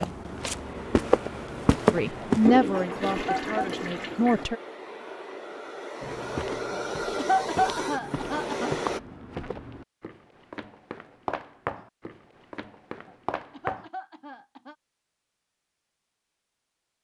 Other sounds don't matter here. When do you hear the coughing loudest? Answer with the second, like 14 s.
7 s.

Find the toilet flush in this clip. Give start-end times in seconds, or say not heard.
2.5-4.5.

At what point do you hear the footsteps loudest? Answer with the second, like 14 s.
2 s.